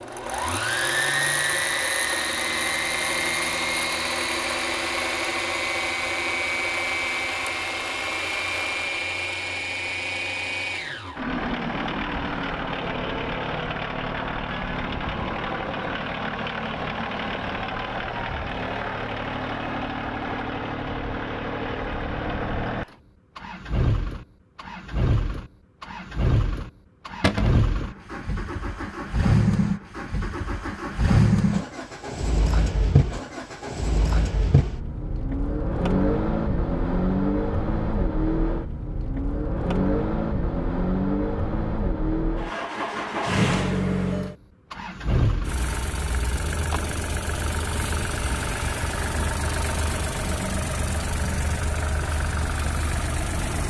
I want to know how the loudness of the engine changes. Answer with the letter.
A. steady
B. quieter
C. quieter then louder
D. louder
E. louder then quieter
A.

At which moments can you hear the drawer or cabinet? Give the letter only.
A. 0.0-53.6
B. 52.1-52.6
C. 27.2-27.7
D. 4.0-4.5
C.